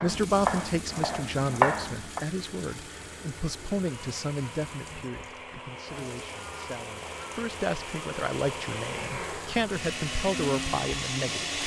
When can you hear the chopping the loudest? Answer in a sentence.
The loudest moment of the chopping is at 2 seconds.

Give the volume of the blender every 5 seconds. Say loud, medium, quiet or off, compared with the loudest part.
quiet, medium, loud.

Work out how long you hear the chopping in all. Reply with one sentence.
The chopping can be heard for 2 seconds in total.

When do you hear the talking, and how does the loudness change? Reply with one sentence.
You can hear the talking from 0.0 to 11.6 s, getting quieter then louder.